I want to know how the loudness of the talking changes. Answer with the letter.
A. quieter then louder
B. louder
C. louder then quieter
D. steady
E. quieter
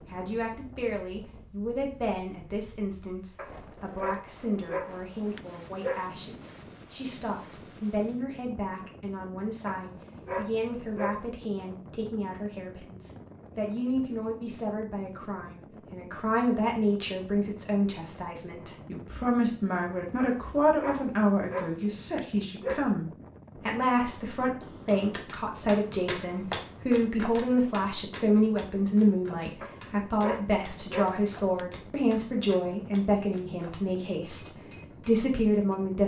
B.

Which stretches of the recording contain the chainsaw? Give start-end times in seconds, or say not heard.
not heard.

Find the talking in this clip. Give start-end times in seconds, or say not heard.
0.1-36.0.